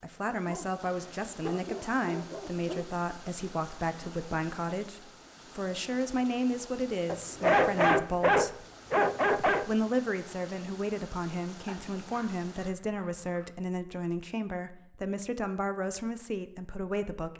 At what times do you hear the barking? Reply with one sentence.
The barking can be heard from 0.3 to 2.9 s, from 7.0 to 9.7 s and from 11.7 to 13.5 s.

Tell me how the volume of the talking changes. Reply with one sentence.
The volume of the talking stays about the same.